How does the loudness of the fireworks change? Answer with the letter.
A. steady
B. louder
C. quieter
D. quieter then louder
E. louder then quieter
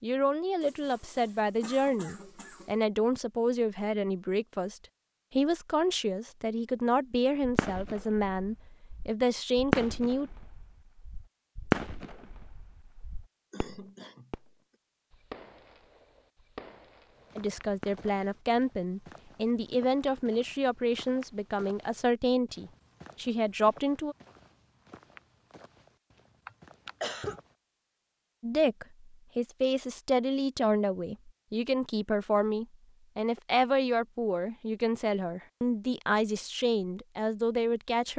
C.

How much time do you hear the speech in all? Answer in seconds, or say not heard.
27 s.